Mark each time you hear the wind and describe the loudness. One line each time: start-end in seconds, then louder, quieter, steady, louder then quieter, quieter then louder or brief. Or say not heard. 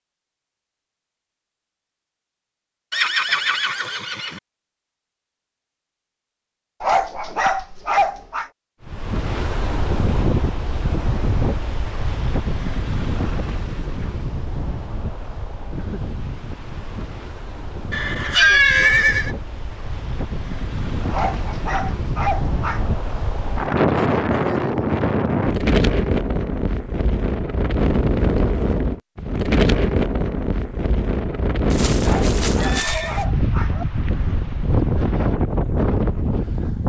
8.8-36.8 quieter then louder.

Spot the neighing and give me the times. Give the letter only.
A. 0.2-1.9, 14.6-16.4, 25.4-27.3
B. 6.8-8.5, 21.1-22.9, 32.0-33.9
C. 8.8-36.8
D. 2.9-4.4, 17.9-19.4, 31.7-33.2
D.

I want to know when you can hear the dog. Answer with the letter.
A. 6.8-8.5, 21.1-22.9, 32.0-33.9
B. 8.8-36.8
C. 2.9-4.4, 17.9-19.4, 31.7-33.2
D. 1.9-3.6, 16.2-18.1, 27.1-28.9
A.